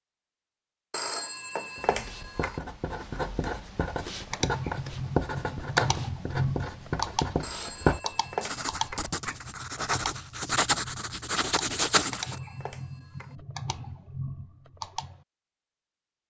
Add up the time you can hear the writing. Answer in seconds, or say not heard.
11 s.